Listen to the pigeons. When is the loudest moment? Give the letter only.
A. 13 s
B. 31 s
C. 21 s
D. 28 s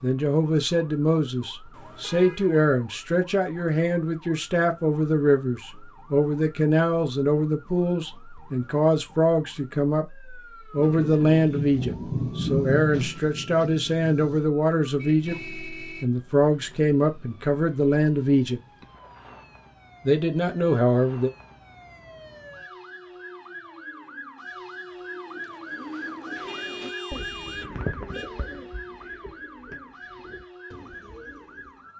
D.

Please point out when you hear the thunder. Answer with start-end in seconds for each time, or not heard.
10.8-14.4.